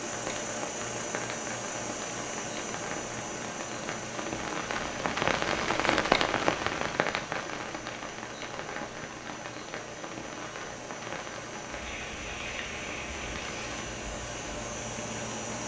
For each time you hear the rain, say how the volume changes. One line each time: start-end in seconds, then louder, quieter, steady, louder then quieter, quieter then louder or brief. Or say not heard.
0.0-15.6 louder then quieter.